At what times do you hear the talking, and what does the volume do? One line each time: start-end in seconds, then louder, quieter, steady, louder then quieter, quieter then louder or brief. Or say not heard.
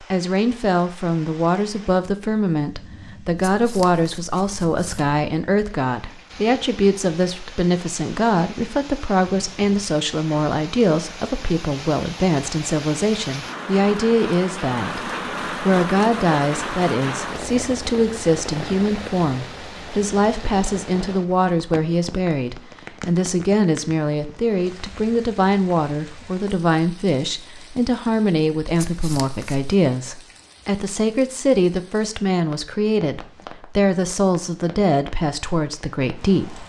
0.0-36.6 steady.